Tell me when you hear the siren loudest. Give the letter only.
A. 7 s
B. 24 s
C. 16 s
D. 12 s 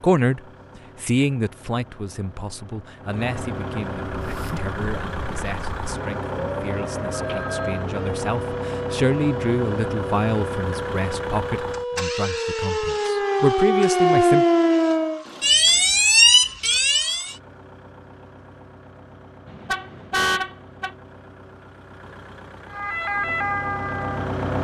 C.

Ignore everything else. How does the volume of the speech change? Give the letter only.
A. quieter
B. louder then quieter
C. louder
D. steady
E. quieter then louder
E.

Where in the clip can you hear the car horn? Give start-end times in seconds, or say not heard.
19.4-20.9.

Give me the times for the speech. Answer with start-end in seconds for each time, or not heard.
0.0-14.4.